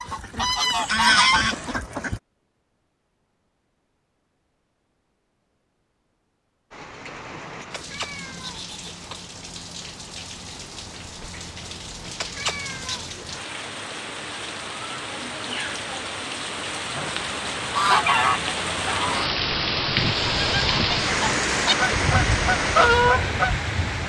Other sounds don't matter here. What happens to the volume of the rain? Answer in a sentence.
The loudness of the rain goes up.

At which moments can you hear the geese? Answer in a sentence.
The geese can be heard from 0.0 to 2.2 s and from 17.8 to 23.6 s.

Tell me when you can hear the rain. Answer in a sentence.
The rain can be heard from 6.7 to 24.0 s.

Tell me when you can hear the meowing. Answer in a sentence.
The meowing can be heard from 7.7 to 9.2 s and from 12.2 to 13.1 s.